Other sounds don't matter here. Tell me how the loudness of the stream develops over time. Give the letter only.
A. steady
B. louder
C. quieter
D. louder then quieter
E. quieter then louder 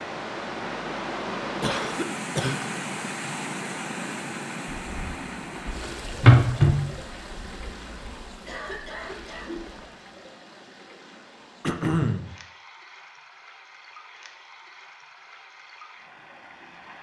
C.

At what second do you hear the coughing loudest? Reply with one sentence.
The loudest moment of the coughing is at 12 seconds.